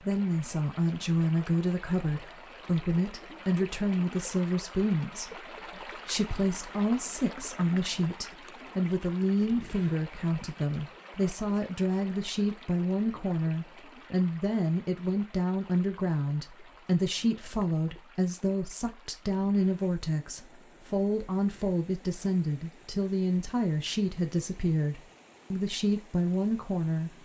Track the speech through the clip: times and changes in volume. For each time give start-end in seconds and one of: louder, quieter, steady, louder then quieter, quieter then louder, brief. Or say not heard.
0.0-27.1 steady.